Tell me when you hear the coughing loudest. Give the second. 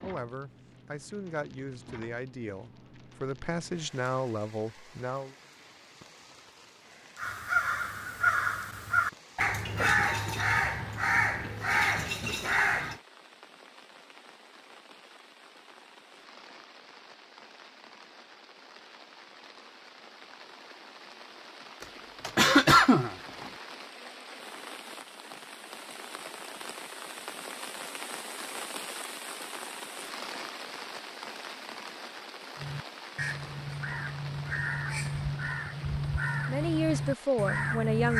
23 s.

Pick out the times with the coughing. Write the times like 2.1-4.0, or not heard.
9.8-10.6, 21.8-23.5.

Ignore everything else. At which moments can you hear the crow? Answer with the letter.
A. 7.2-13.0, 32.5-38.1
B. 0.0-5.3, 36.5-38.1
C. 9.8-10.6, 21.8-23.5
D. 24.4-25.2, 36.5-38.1
A.